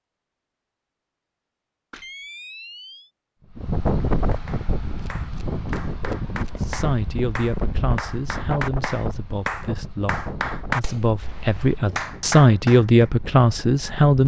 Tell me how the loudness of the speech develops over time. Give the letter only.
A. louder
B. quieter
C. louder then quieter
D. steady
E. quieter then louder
A.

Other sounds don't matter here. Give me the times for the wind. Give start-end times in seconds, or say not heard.
3.4-14.2.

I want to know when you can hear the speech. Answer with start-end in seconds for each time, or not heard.
6.6-14.2.